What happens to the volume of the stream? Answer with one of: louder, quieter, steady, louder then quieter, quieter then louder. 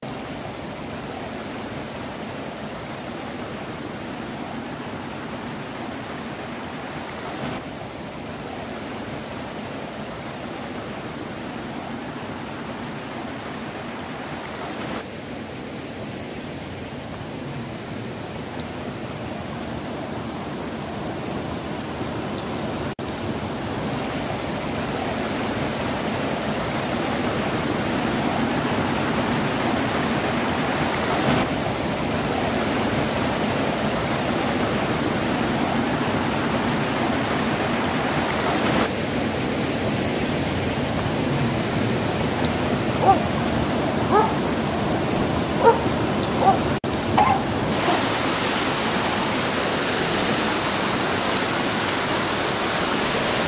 louder.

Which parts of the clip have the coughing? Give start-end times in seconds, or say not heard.
not heard.